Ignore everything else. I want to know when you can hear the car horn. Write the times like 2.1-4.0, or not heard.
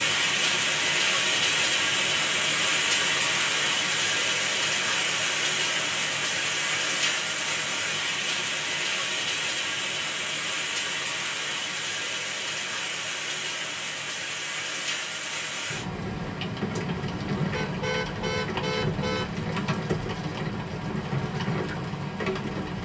17.5-19.4.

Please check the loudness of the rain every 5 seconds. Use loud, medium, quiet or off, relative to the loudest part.
loud, loud, medium, medium, medium.